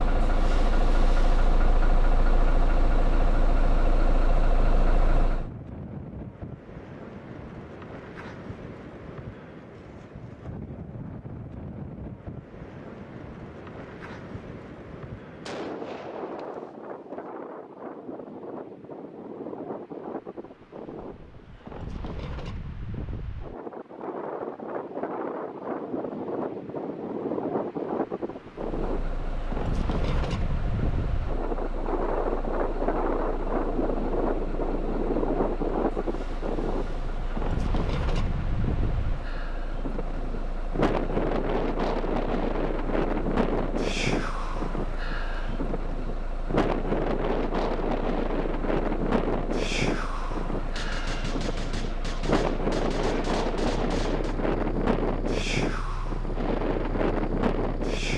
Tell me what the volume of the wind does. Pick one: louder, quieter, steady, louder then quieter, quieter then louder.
louder.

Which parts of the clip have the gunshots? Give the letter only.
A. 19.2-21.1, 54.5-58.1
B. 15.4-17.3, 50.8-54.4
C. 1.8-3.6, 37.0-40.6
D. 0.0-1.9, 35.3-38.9
B.